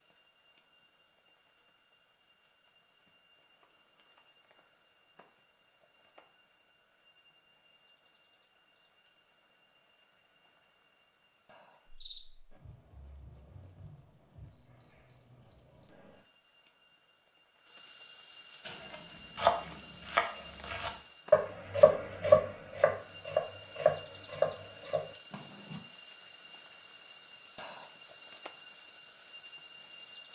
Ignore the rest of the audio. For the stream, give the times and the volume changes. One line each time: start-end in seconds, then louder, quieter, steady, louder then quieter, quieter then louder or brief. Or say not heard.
not heard.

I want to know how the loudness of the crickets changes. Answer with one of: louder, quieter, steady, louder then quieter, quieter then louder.
louder.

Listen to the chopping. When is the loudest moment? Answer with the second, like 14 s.
22 s.